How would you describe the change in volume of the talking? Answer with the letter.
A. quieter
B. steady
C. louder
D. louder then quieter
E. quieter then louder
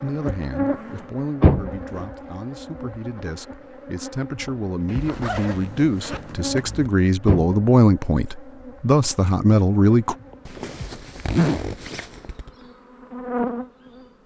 C.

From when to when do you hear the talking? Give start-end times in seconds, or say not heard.
0.0-10.2.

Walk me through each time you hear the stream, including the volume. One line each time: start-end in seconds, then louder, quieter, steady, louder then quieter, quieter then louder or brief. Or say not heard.
not heard.